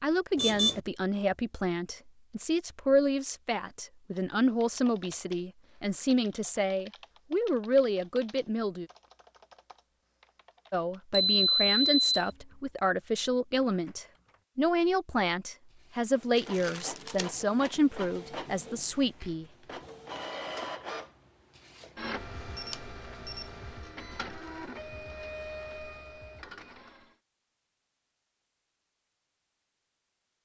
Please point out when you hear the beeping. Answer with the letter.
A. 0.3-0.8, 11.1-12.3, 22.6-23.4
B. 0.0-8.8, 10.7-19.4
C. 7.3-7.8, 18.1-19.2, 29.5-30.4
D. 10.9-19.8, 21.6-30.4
A.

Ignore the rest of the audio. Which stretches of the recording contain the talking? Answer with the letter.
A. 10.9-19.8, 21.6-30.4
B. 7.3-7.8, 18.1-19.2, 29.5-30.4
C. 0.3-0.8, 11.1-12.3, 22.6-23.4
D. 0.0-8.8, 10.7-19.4
D.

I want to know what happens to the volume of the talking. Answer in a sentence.
The loudness of the talking stays about the same.